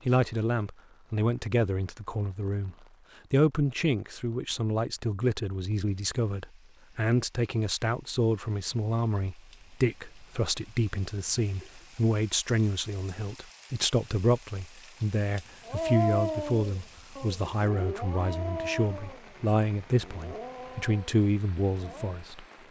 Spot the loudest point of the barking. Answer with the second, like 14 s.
16 s.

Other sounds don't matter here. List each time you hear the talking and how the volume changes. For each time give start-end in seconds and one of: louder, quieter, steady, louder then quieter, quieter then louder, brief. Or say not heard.
0.1-22.4 steady.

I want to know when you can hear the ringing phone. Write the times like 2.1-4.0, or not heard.
not heard.